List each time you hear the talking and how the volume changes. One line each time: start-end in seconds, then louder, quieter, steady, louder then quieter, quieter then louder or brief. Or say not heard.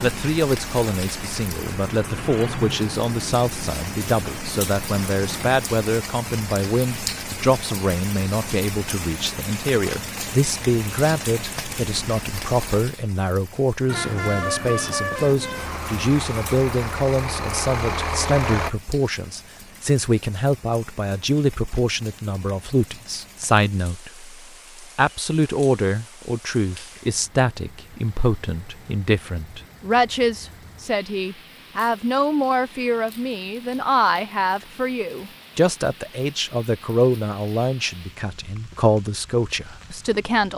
0.0-40.5 steady.